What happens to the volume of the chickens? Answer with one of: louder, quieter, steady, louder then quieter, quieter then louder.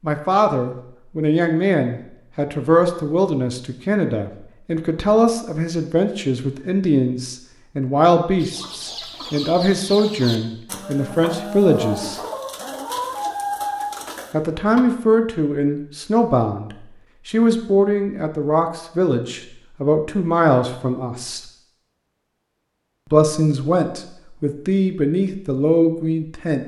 louder.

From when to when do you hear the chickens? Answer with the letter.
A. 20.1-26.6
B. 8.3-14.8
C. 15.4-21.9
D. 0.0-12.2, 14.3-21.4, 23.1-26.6
B.